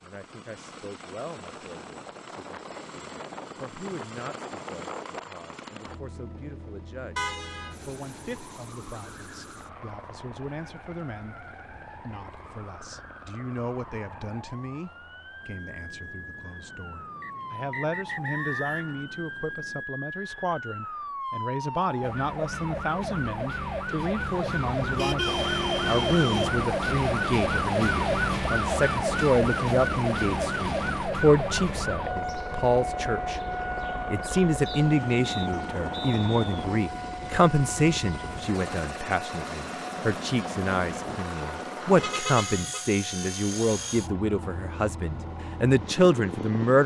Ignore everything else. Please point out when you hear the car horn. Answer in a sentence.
You can hear the car horn from 7.2 to 7.8 s, from 24.2 to 26.6 s and from 42.0 to 42.9 s.